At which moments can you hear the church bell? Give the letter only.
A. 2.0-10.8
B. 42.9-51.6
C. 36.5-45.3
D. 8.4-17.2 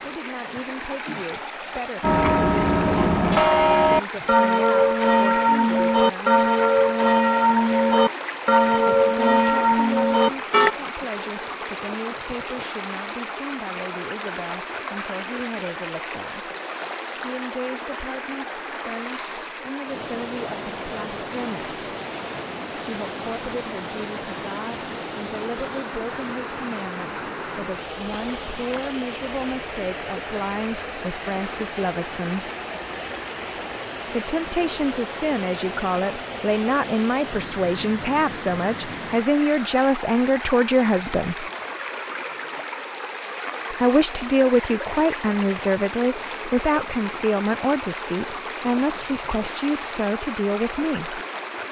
A.